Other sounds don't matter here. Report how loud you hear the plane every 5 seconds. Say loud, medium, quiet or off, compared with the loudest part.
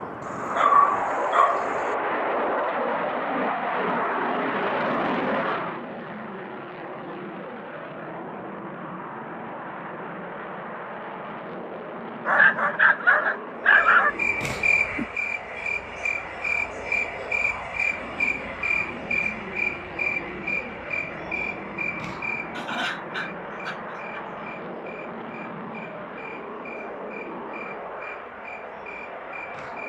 loud, medium, medium, medium, medium, medium.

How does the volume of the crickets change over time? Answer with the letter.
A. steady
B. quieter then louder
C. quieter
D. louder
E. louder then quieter
C.